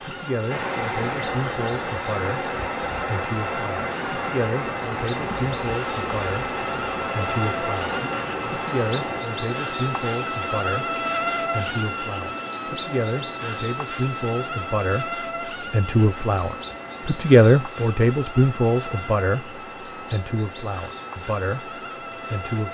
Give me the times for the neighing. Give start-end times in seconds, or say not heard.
not heard.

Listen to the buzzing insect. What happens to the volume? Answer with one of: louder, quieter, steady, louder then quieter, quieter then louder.
louder then quieter.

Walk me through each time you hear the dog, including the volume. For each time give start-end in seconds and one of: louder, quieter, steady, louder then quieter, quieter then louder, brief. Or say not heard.
not heard.